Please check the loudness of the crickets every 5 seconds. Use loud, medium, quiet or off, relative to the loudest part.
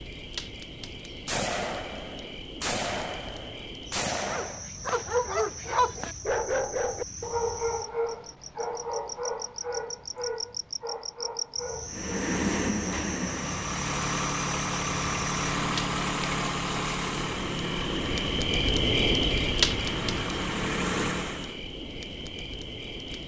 quiet, quiet, medium, loud, medium.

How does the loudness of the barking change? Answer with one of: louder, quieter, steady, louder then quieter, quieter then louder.
quieter.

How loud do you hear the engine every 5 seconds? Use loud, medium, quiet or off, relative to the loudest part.
off, off, loud, loud, loud.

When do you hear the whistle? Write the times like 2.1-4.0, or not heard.
not heard.